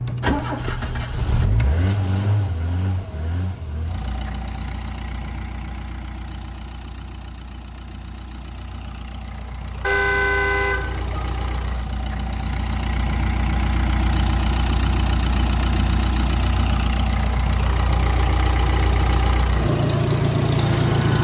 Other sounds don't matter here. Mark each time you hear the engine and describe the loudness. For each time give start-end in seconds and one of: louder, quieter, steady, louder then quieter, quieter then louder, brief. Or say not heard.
0.0-21.1 quieter then louder.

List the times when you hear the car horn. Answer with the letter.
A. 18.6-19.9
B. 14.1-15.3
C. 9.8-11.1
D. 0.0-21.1
C.